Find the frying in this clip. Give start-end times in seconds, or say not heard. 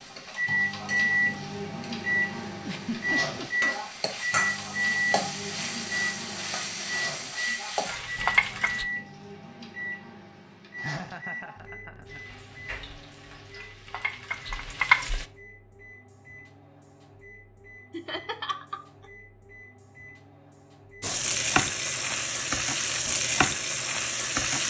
0.0-8.8, 12.1-15.2, 21.0-24.6.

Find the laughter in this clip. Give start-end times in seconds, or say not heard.
2.6-3.7, 10.8-12.2, 17.9-19.1.